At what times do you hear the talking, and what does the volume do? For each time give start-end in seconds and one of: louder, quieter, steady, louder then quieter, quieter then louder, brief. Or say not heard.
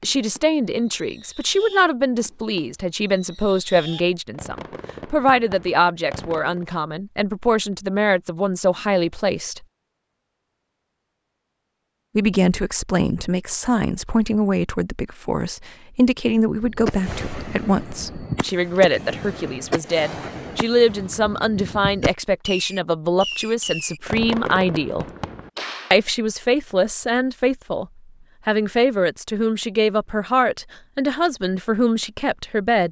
0.0-9.7 steady
12.2-25.1 steady
25.9-27.9 brief
28.4-32.8 steady.